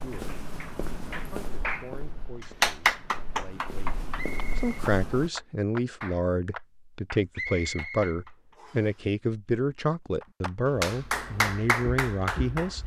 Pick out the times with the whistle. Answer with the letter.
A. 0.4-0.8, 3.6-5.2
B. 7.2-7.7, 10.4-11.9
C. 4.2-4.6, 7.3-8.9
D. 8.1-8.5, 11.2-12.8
C.